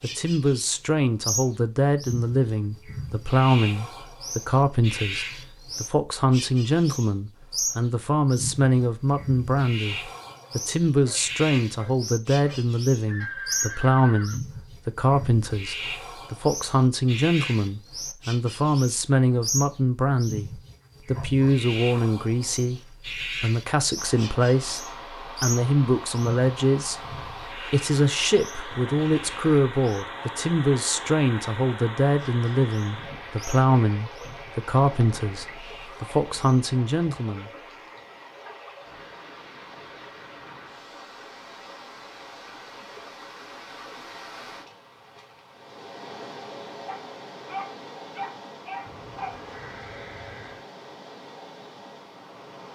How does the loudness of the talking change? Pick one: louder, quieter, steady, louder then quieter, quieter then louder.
steady.